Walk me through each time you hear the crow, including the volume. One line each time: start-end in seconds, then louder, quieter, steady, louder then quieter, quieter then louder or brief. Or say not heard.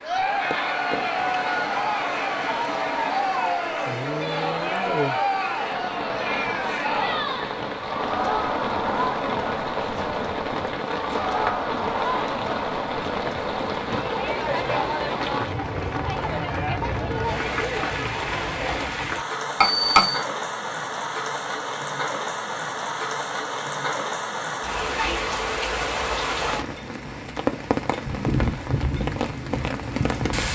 not heard.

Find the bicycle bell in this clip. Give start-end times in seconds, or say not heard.
19.6-20.2.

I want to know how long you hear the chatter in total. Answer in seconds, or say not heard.
19 s.